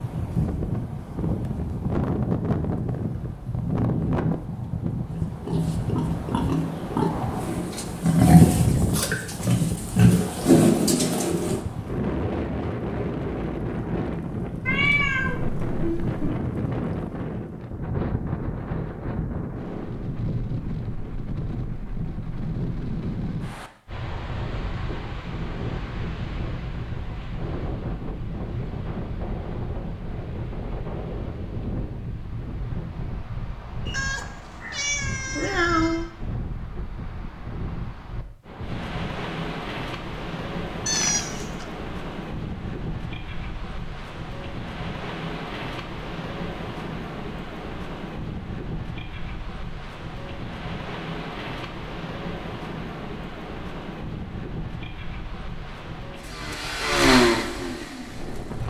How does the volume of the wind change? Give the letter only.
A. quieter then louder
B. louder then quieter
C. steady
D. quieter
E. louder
D.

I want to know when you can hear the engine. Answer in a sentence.
The engine can be heard from 56.1 to 58.6 s.